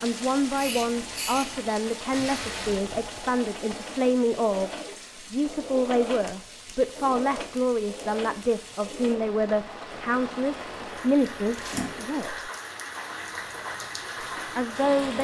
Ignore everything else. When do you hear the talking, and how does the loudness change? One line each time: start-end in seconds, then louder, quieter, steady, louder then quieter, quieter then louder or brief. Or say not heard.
0.0-12.5 steady
14.6-15.1 brief.